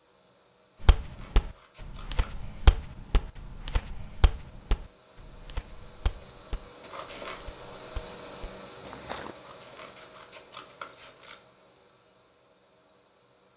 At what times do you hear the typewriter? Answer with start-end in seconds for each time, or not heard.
not heard.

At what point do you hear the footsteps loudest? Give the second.
3 s.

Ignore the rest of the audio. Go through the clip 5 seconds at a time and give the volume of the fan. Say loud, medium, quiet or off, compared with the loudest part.
quiet, loud, medium.